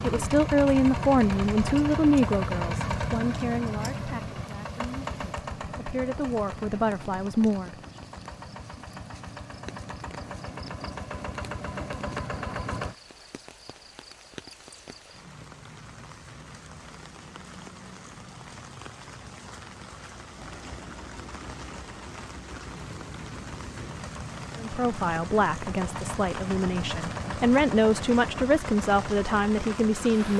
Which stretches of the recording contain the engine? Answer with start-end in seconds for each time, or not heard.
0.0-12.9, 20.4-30.3.